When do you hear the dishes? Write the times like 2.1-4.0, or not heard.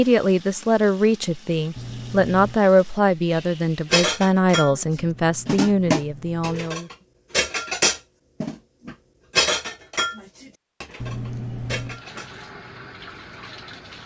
3.9-12.3.